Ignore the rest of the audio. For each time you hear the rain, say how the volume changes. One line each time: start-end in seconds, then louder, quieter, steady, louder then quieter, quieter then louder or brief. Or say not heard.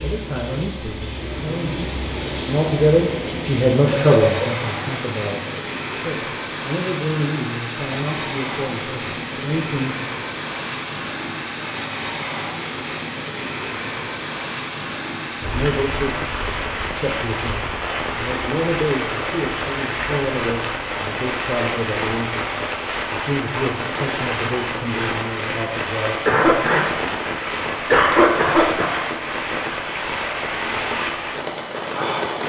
0.0-32.4 steady.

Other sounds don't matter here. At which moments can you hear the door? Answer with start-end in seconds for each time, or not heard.
not heard.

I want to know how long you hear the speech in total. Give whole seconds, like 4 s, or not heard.
21 s.